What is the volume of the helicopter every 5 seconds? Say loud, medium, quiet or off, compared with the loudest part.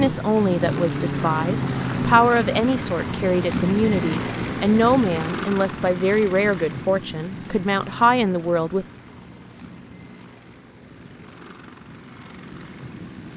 loud, medium, quiet.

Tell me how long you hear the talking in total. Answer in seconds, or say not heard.
9 s.